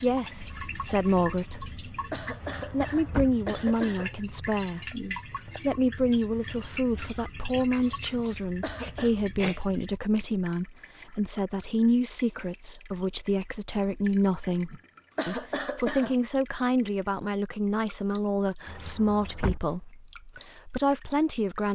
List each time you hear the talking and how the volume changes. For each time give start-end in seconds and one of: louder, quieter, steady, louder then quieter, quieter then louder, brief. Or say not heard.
0.0-1.8 brief
2.7-21.6 steady.